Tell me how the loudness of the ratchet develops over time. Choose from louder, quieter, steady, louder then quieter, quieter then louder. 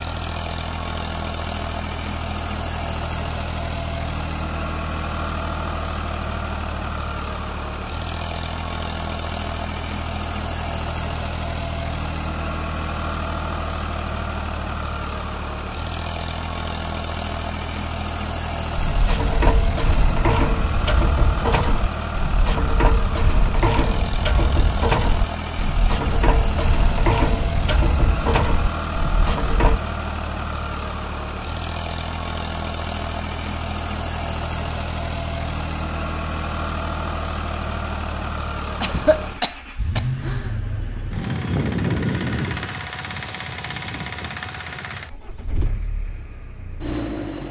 steady.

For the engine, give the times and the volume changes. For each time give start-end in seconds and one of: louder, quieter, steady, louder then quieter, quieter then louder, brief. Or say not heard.
0.0-47.4 steady.